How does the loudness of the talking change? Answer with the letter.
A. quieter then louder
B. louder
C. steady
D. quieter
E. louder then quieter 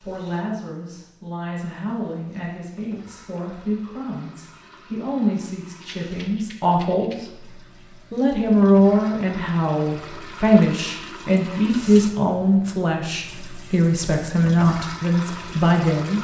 B.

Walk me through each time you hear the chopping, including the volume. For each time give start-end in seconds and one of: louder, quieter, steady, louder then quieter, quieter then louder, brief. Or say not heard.
not heard.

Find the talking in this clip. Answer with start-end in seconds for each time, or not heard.
0.0-7.5, 8.1-16.1.